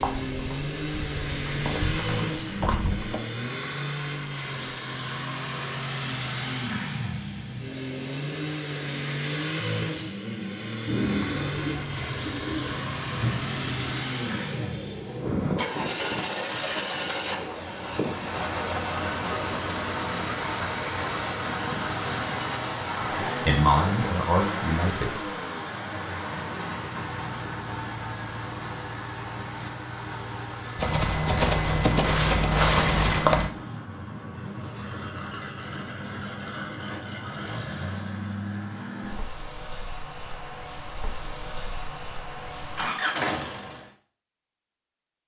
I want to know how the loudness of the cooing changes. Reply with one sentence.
The loudness of the cooing goes down.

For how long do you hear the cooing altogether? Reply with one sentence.
The cooing can be heard for 7 seconds in total.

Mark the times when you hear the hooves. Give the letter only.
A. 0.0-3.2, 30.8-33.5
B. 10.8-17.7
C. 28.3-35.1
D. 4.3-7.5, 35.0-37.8
A.